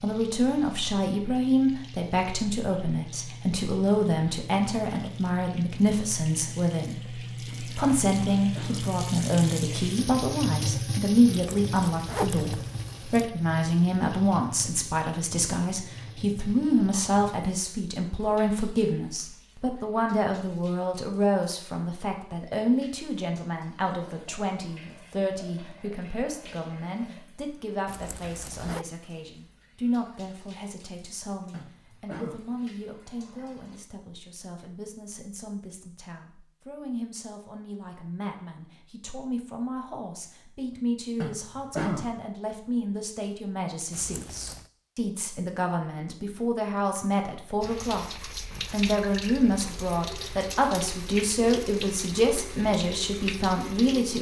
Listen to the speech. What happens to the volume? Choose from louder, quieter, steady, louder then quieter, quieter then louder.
quieter then louder.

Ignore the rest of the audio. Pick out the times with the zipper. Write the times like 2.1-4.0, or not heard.
11.2-13.3, 27.9-28.9, 43.9-44.7.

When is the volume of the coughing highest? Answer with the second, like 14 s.
42 s.